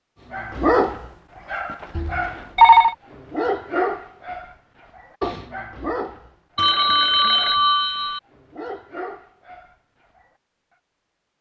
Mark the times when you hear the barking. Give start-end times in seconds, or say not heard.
0.3-10.3.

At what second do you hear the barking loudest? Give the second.
1 s.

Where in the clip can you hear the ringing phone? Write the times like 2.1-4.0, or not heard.
1.9-3.0, 6.5-8.2.